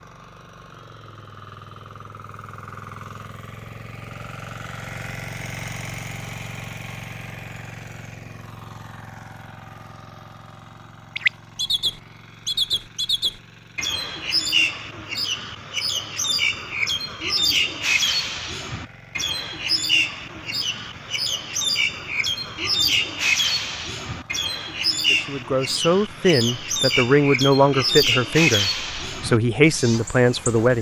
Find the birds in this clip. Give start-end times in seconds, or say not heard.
11.2-30.7.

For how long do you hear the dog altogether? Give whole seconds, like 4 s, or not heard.
not heard.